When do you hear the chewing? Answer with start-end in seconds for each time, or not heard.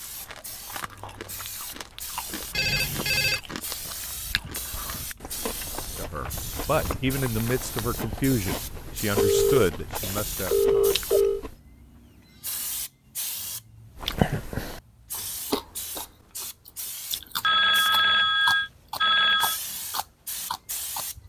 0.0-11.6, 13.9-21.1.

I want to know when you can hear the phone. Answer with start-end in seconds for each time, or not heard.
2.5-3.4, 9.2-11.4, 17.4-19.6.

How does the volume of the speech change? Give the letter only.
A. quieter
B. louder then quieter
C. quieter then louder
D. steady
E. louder
A.